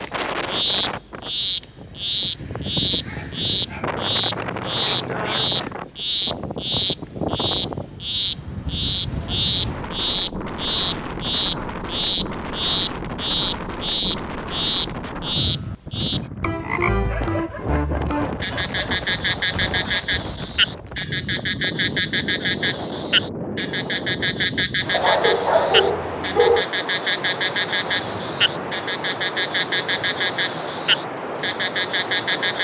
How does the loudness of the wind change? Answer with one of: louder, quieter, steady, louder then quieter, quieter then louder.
steady.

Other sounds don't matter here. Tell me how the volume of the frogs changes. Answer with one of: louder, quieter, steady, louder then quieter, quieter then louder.
steady.